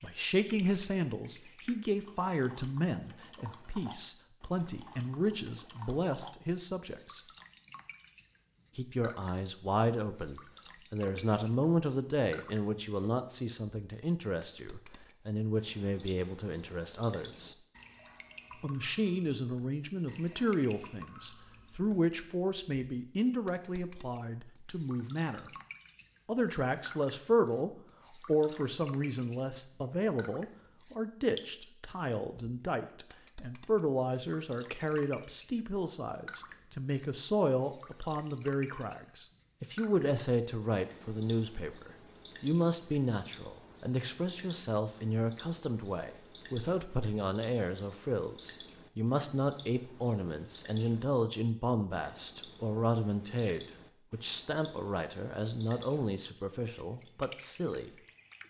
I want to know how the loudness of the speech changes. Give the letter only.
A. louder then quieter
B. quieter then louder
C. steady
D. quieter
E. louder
C.